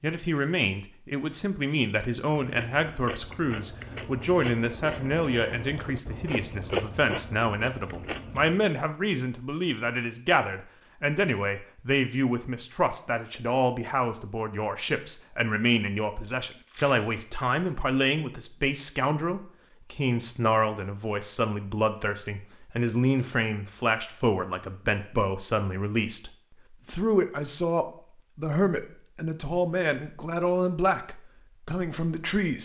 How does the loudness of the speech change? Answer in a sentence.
The volume of the speech stays about the same.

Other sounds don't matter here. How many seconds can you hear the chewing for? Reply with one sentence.
The chewing can be heard for 6 seconds in total.